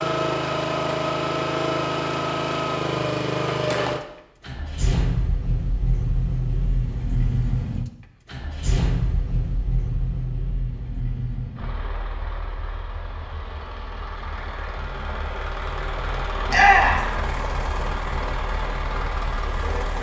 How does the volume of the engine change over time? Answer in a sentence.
The volume of the engine goes down, then up.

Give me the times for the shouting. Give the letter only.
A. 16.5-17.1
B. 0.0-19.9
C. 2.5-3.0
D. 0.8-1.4
A.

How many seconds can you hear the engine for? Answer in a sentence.
You can hear the engine for 20 seconds altogether.